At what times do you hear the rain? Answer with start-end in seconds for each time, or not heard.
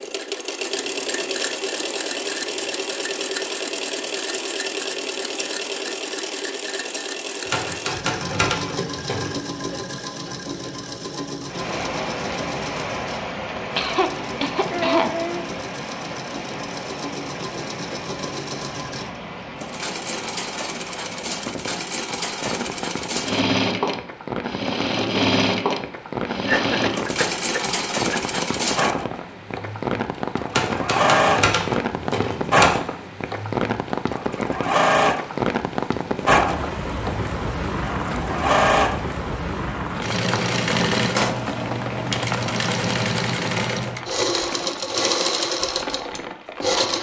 11.4-46.9.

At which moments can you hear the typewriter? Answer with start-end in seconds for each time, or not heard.
7.5-9.3, 30.6-32.8.